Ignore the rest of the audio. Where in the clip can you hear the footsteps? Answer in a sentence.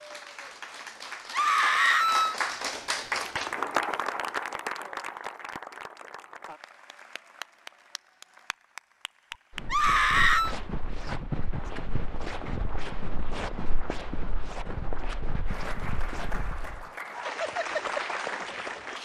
You can hear the footsteps from 9.3 to 16.9 s.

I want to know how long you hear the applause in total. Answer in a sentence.
You can hear the applause for 13 seconds altogether.